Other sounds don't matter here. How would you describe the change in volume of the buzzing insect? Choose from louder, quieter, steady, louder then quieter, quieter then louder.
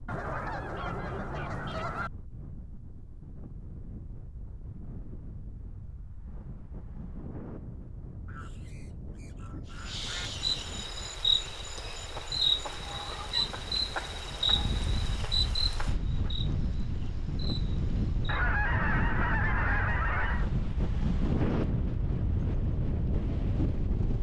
quieter.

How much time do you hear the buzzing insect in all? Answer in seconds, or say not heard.
9 s.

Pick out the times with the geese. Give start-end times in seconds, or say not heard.
0.1-2.1, 8.2-10.3, 12.4-14.6, 18.2-20.4.